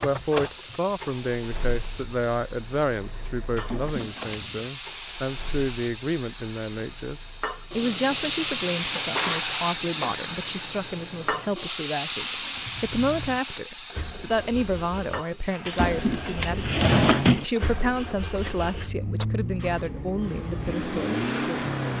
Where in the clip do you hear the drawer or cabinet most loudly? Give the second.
17 s.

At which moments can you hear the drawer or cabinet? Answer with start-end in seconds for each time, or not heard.
3.5-4.7, 8.8-10.2, 15.7-17.4.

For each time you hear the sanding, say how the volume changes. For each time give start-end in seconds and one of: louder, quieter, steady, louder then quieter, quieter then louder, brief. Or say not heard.
not heard.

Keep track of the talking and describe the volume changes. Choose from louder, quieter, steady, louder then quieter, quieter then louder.
steady.